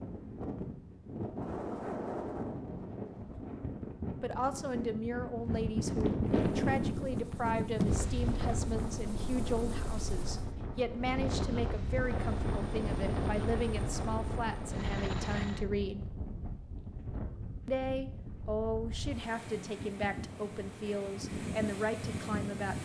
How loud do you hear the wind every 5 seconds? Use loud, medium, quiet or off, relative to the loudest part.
medium, loud, loud, medium, medium.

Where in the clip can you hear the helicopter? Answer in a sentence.
The helicopter can be heard from 6.2 to 10.6 s and from 12.0 to 15.7 s.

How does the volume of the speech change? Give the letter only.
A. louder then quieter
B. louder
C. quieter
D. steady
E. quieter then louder
D.